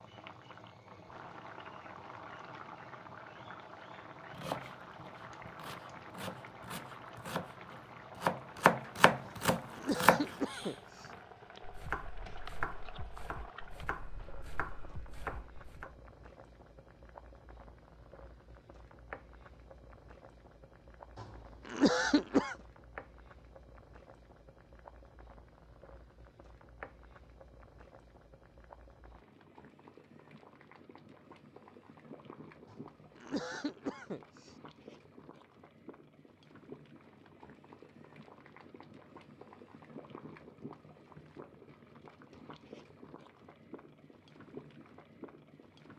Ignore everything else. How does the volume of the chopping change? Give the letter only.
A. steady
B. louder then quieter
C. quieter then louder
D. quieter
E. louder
B.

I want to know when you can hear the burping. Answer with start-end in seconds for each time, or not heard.
not heard.